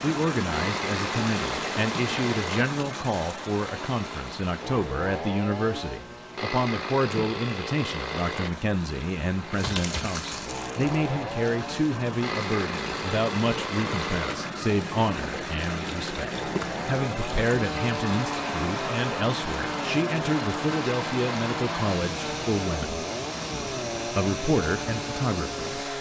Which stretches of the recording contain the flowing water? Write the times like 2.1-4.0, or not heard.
0.0-25.9.